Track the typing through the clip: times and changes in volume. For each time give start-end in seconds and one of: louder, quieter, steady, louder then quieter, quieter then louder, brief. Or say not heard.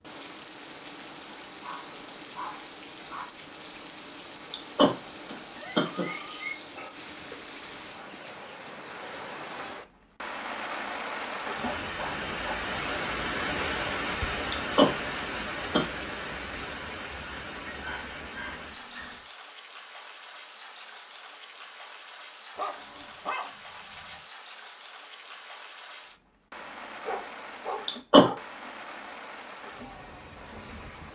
not heard.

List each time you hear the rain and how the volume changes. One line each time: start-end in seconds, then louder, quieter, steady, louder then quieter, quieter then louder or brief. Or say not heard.
0.0-31.1 louder then quieter.